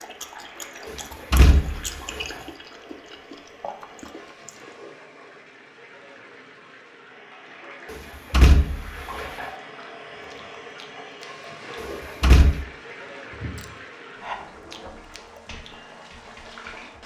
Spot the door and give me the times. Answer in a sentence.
You can hear the door from 1.3 to 2.0 s, from 8.3 to 9.0 s and from 12.2 to 12.6 s.